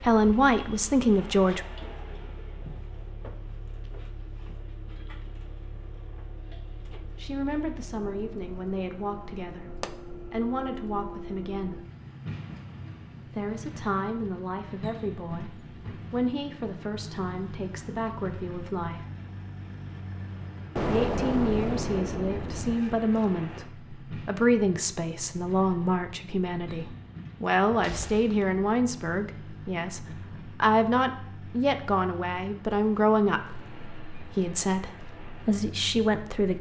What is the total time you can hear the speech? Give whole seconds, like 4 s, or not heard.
28 s.